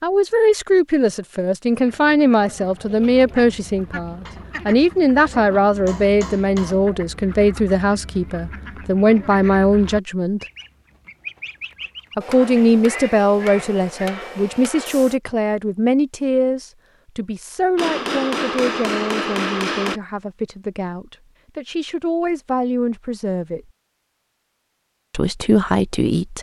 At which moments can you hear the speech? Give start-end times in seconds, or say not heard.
0.0-10.4, 12.2-23.6, 25.1-26.3.